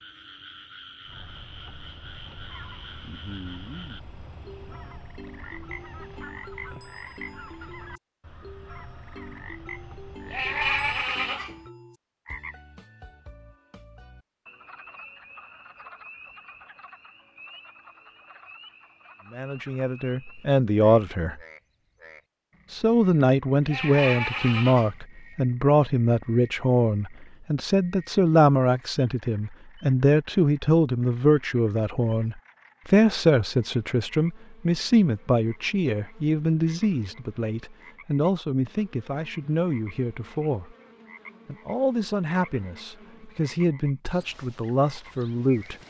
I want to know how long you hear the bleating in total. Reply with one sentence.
The bleating can be heard for 3 seconds in total.